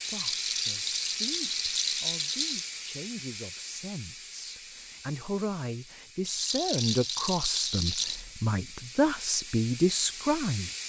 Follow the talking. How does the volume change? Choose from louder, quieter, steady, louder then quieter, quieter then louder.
louder.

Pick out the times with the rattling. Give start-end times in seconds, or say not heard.
0.0-2.6, 6.2-8.2.